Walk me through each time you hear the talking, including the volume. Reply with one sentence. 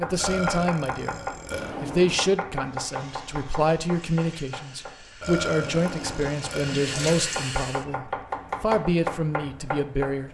You can hear the talking briefly from 0.0 to 1.2 s; and from 1.8 to 10.2 s, at a steady volume.